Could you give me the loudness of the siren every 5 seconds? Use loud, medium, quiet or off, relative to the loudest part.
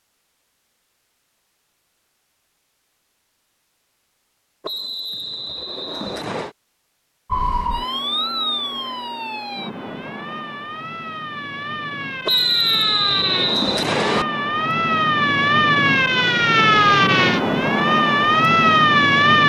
off, medium, medium, loud.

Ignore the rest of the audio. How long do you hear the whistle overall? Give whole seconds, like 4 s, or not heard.
4 s.